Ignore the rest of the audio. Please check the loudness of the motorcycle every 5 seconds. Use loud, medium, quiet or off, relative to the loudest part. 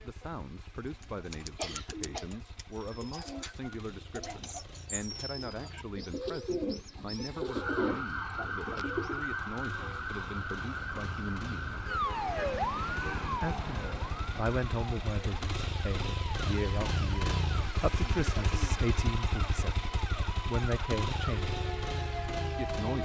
quiet, quiet, medium, loud, loud.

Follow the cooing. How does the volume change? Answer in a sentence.
The loudness of the cooing goes up.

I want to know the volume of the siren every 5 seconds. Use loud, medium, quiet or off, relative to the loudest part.
off, loud, loud, medium, loud.